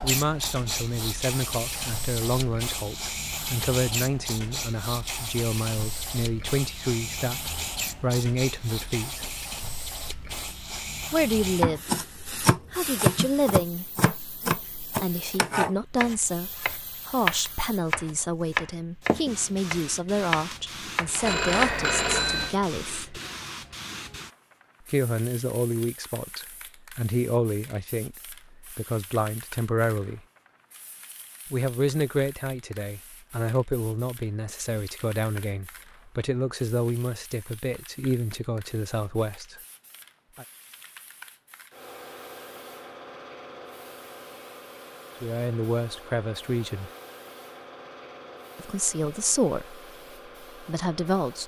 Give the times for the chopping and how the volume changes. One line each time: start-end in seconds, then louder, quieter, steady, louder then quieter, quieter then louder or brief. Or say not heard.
11.4-21.7 quieter.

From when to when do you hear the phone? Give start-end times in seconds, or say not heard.
21.2-22.6.